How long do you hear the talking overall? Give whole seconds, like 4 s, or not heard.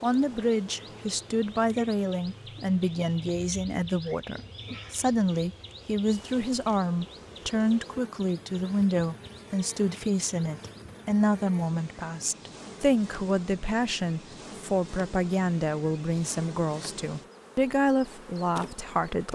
19 s.